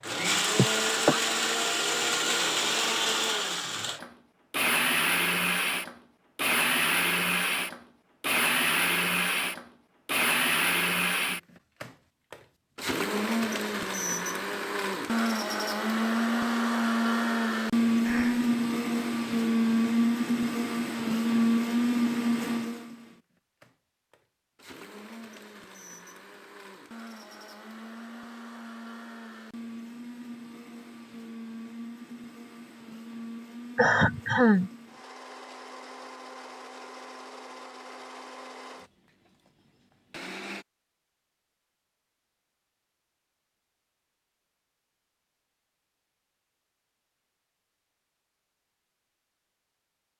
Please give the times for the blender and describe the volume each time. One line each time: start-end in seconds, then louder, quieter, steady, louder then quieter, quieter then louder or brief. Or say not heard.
0.0-40.6 quieter.